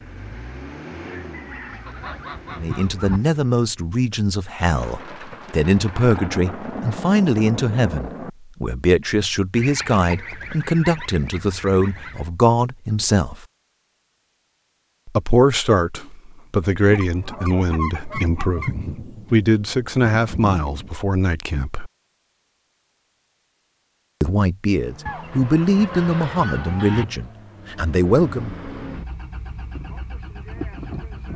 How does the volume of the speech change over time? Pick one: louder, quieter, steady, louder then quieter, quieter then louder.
steady.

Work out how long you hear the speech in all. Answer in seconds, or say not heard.
22 s.